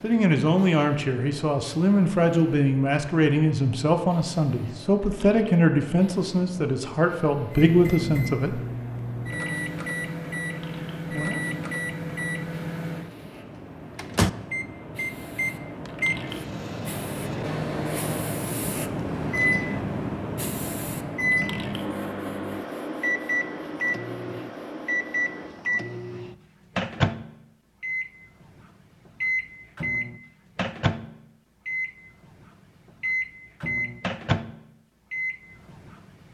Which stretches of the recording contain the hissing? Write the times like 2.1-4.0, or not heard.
0.0-25.6.